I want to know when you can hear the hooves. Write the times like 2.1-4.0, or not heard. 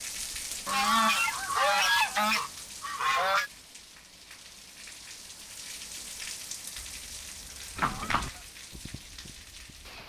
7.8-9.9.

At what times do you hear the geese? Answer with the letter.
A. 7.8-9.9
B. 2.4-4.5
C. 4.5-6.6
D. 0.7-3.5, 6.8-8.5
D.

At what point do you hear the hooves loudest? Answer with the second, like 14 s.
8 s.